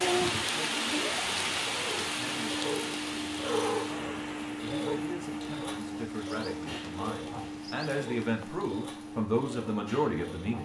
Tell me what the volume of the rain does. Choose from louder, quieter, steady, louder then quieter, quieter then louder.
quieter.